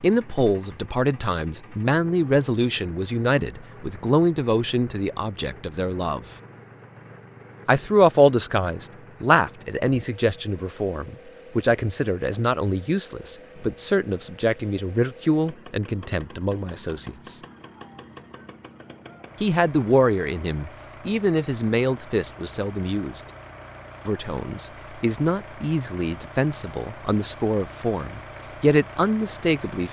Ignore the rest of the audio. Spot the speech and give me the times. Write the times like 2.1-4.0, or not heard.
0.0-6.2, 7.7-17.4, 19.4-23.2, 24.1-29.8.